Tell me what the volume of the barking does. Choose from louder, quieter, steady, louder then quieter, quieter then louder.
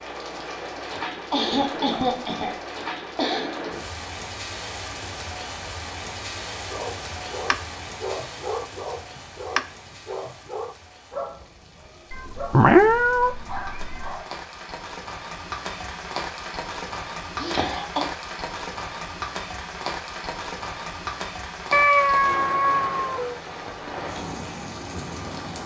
quieter.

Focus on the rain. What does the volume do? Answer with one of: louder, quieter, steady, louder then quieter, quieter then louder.
quieter then louder.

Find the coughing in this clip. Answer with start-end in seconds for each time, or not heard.
0.8-3.5, 17.4-18.0.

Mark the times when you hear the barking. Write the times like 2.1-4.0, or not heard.
6.7-14.4.